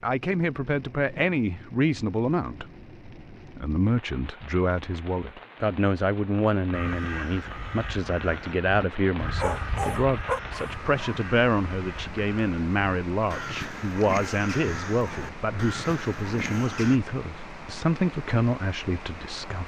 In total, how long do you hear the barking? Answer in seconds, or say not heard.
2 s.